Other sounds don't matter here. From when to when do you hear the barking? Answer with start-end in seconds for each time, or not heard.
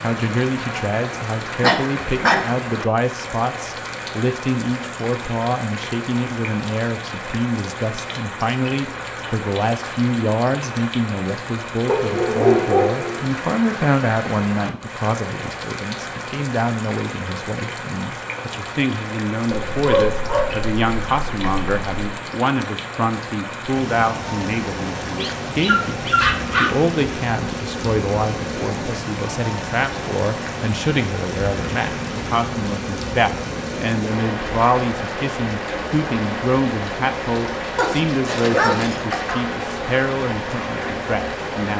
1.6-2.4, 11.8-13.2, 19.5-21.9, 25.1-26.8, 37.8-39.5.